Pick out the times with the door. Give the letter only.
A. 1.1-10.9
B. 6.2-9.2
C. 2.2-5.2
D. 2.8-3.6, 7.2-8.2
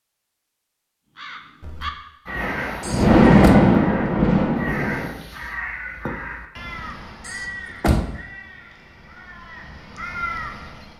D.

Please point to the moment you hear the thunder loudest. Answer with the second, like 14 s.
3 s.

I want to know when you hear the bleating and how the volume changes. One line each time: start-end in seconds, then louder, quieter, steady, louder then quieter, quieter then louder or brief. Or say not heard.
not heard.